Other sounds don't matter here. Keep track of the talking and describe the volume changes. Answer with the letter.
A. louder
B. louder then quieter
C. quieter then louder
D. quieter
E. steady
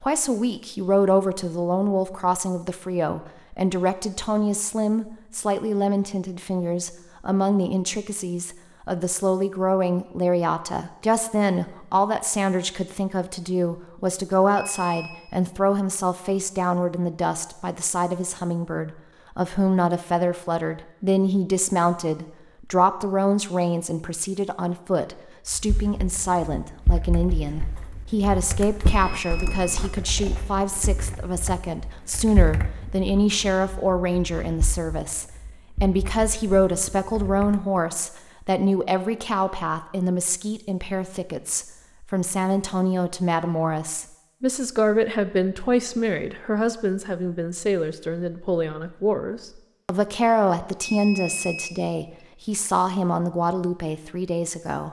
E.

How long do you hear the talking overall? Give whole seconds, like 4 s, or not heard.
55 s.